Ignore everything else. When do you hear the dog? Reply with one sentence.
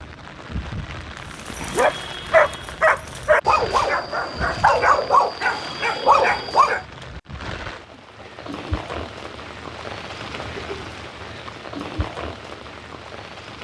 The dog can be heard from 1.3 to 6.8 s.